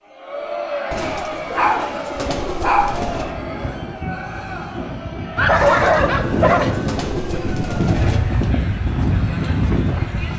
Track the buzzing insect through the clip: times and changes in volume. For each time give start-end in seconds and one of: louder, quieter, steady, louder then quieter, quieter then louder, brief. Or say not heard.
not heard.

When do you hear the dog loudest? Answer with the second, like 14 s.
6 s.